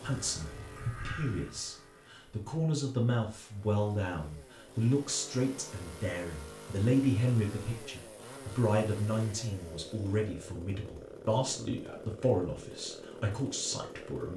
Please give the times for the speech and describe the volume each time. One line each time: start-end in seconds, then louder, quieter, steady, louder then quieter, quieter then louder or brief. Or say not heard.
0.0-14.3 steady.